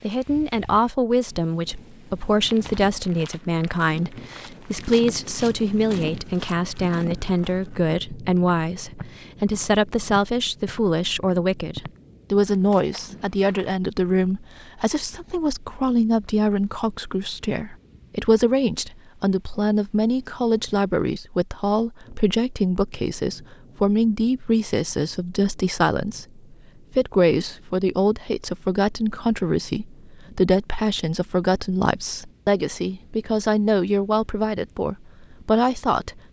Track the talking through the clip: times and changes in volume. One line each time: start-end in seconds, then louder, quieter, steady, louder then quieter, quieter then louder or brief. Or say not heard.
0.0-36.2 steady.